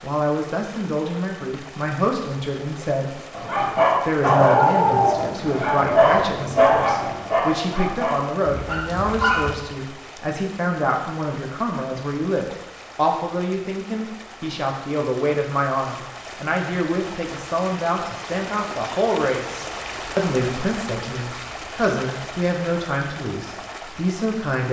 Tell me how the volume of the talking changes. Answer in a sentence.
The volume of the talking stays about the same.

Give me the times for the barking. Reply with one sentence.
You can hear the barking from 3.3 to 9.6 s.